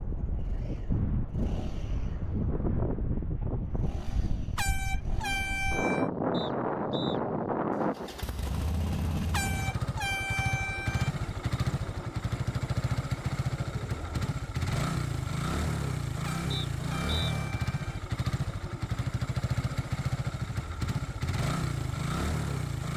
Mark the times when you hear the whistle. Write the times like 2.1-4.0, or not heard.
6.3-7.2, 16.5-17.4.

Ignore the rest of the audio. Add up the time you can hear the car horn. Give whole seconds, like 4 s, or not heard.
5 s.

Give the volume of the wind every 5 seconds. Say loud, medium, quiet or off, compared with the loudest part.
loud, loud, quiet, off, off.